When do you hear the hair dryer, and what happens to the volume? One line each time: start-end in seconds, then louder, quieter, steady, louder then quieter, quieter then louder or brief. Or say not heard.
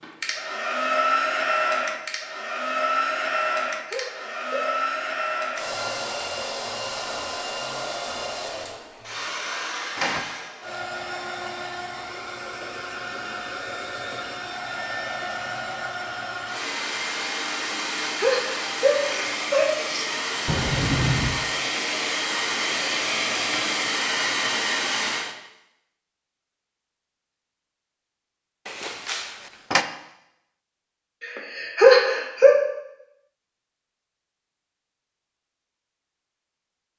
0.0-25.4 quieter then louder.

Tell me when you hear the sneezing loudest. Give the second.
32 s.